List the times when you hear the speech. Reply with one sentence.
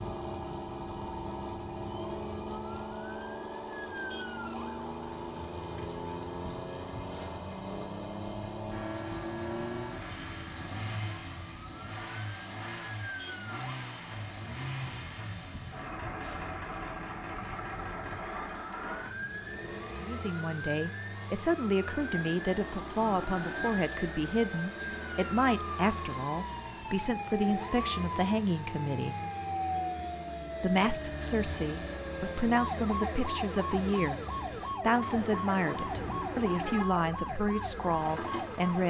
The speech can be heard from 20.0 to 29.1 s, from 30.6 to 34.2 s and from 34.8 to 38.8 s.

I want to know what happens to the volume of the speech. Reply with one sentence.
The loudness of the speech stays about the same.